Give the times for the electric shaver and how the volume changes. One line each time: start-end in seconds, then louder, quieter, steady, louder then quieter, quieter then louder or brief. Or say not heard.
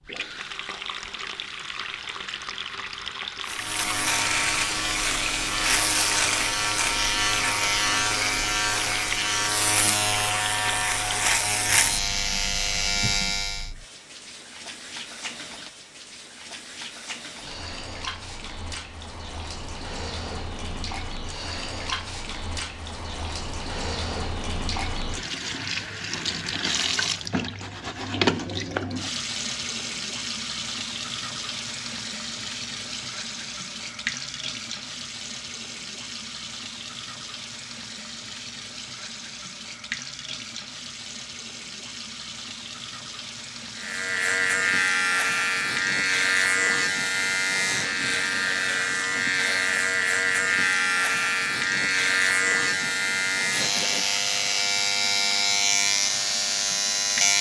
3.5-13.7 steady
43.8-57.3 steady.